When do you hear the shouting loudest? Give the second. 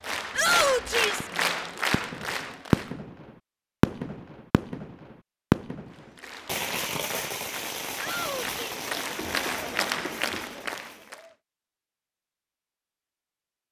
1 s.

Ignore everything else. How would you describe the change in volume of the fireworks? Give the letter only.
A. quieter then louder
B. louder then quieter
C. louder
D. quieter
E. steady
D.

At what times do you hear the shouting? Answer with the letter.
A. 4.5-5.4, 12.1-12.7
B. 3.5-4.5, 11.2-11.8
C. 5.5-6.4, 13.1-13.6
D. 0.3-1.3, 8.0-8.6
D.